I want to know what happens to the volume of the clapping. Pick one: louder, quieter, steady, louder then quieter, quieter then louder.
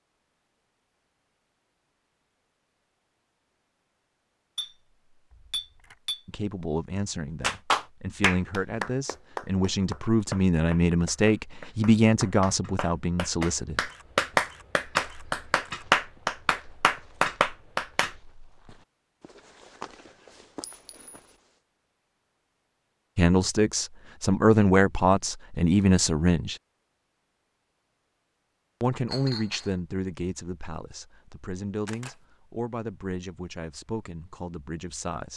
quieter then louder.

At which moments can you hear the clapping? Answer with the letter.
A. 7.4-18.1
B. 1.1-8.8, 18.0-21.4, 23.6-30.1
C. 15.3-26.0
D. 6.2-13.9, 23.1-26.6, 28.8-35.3
A.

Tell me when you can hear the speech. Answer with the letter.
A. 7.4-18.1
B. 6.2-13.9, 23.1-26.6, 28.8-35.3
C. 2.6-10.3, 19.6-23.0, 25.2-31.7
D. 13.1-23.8
B.